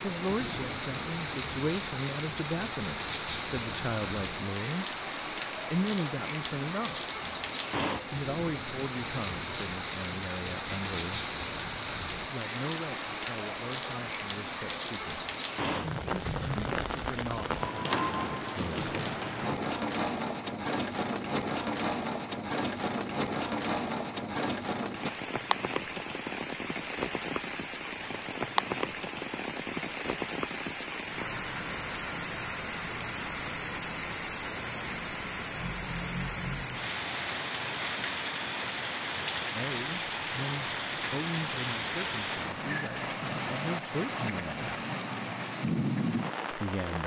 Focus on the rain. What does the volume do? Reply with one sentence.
The loudness of the rain stays about the same.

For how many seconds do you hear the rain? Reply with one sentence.
The rain can be heard for 47 seconds in total.